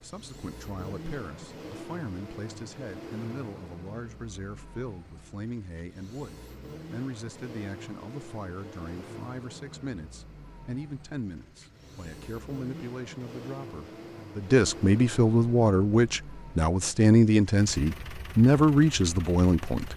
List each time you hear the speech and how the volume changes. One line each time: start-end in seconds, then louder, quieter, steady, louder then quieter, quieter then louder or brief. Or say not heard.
0.0-19.9 louder.